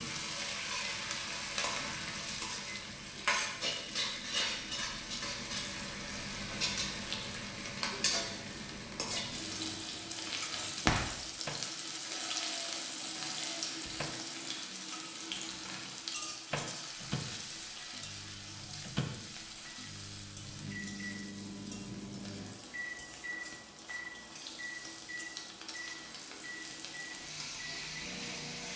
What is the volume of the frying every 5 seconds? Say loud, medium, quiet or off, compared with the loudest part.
loud, loud, loud, medium, quiet, medium.